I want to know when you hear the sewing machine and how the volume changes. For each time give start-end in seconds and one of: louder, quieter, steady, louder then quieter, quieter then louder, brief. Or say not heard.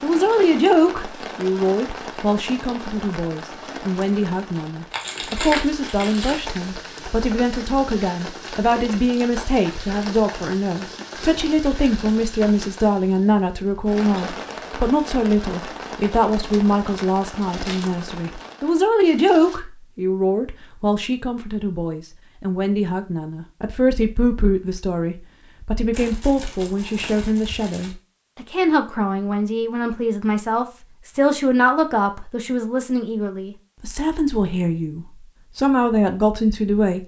not heard.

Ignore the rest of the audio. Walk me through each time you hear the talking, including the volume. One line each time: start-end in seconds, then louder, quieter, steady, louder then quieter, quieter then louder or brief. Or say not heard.
0.0-37.0 steady.